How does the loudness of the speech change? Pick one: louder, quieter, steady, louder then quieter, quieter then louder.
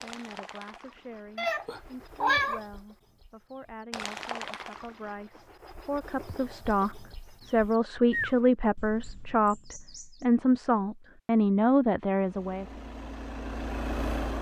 louder.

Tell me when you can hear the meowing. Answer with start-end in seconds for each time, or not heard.
1.4-2.6.